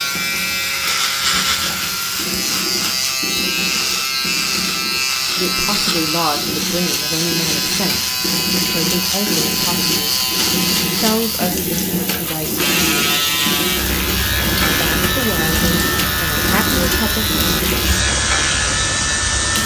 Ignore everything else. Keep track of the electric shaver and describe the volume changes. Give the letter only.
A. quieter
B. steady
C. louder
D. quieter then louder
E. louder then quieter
B.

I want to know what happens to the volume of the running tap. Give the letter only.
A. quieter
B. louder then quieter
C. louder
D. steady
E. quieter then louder
C.